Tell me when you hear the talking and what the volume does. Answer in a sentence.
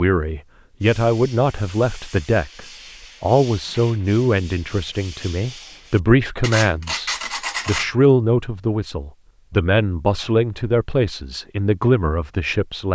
You can hear the talking from 0.0 to 12.9 s, at a steady volume.